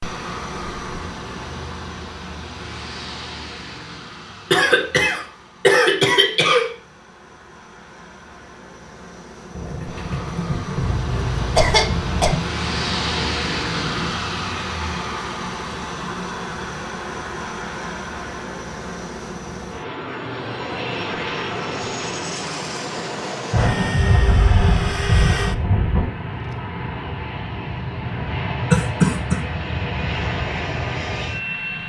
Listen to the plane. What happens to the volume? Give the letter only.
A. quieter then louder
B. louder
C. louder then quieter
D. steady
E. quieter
B.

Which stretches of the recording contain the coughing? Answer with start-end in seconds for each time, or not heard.
4.5-6.7, 10.9-12.3, 28.7-29.4.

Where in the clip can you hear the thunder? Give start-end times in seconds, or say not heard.
9.5-14.3, 23.5-26.1.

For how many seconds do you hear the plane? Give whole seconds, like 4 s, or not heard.
32 s.